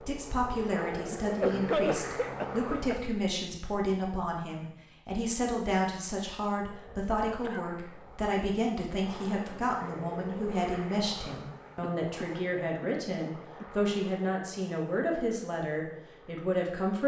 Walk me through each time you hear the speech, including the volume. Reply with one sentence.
The speech can be heard from 0.0 to 17.0 s, at a steady volume.